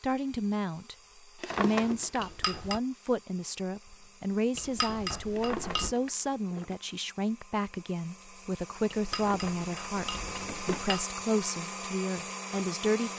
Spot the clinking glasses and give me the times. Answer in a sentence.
The clinking glasses can be heard from 2.1 to 2.8 s, from 4.5 to 6.0 s and from 8.9 to 11.1 s.